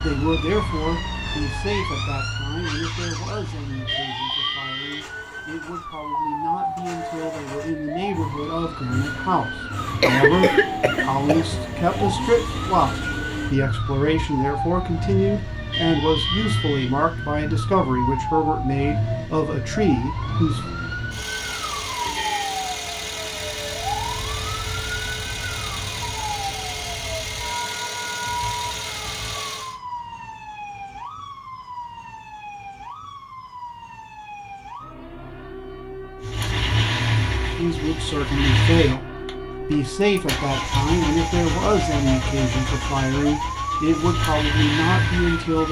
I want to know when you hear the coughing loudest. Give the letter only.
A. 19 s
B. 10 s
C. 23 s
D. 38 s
B.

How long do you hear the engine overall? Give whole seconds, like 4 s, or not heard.
39 s.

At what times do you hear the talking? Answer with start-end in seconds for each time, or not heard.
0.0-20.6, 37.5-45.6.